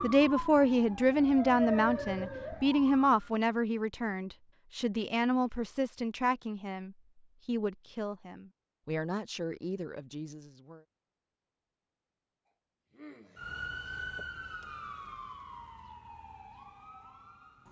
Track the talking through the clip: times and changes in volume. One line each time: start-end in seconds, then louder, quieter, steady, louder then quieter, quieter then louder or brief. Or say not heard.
0.0-10.8 quieter.